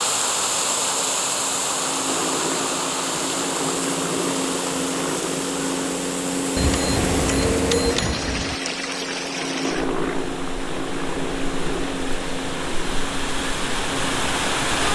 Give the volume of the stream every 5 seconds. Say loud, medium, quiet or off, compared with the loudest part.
loud, medium, loud.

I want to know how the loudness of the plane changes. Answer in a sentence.
The volume of the plane goes up, then down.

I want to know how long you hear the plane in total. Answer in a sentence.
You can hear the plane for 15 seconds altogether.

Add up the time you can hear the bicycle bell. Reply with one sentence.
The bicycle bell can be heard for 2 seconds in total.